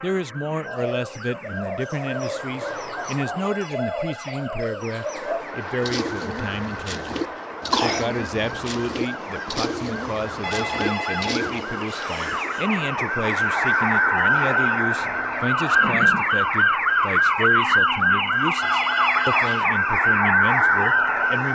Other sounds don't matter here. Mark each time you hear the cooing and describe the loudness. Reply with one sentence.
You can hear the cooing from 0.7 to 11.7 s, at a steady volume.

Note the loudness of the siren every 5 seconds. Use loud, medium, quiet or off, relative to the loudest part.
quiet, quiet, medium, loud, loud.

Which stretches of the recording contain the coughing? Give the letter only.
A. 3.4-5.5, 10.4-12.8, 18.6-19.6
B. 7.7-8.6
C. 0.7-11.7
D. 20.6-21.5
B.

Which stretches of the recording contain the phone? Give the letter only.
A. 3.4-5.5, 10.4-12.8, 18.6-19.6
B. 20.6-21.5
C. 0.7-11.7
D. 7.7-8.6
A.